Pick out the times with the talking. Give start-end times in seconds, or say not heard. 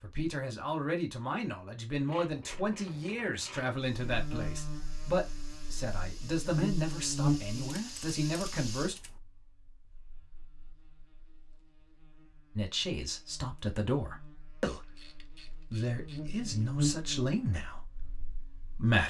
0.0-8.9, 12.6-19.0.